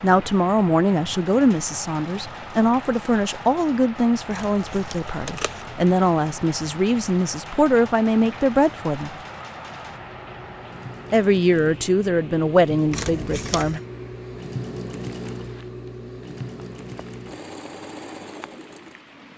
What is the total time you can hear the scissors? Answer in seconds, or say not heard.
2 s.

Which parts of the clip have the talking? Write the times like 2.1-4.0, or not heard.
0.0-9.1, 11.1-13.8.